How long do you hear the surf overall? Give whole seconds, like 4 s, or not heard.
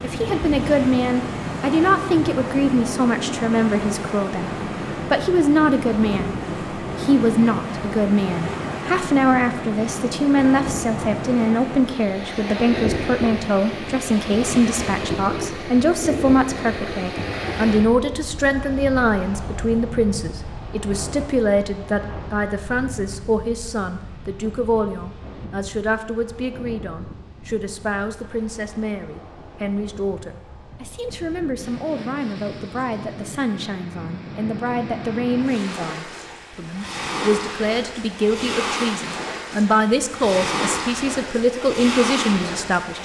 43 s.